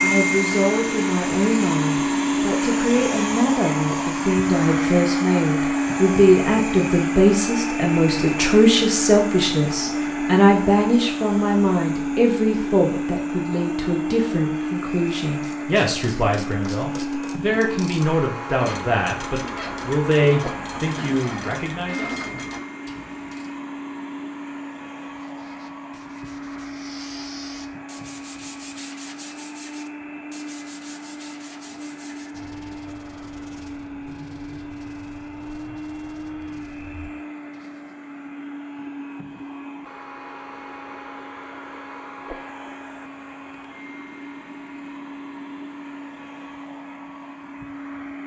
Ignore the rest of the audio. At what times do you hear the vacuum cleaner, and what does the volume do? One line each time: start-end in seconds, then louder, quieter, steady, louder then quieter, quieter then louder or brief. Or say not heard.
0.0-48.2 quieter.